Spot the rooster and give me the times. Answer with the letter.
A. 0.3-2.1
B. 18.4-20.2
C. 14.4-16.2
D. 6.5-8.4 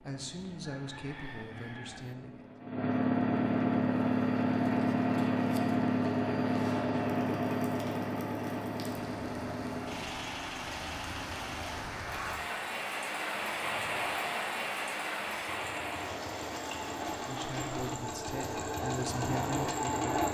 A.